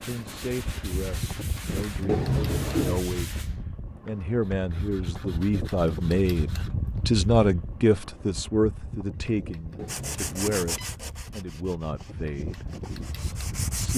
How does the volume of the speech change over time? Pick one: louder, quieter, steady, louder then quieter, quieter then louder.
louder then quieter.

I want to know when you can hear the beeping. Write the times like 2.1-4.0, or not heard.
2.0-3.0, 9.8-10.9.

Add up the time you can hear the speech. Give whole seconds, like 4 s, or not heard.
14 s.